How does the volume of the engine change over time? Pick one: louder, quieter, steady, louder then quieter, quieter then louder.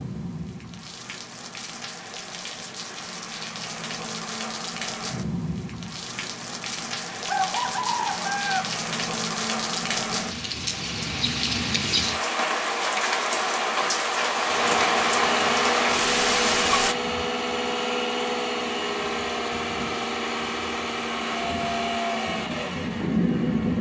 steady.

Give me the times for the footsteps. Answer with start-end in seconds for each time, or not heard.
not heard.